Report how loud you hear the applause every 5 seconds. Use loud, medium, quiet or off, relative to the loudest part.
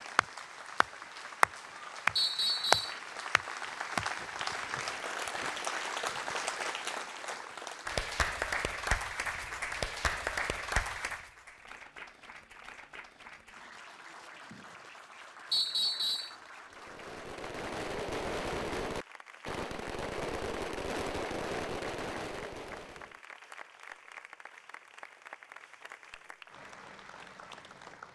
loud, loud, medium, quiet, quiet, quiet.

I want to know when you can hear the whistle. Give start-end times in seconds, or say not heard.
2.1-3.0, 15.5-16.4.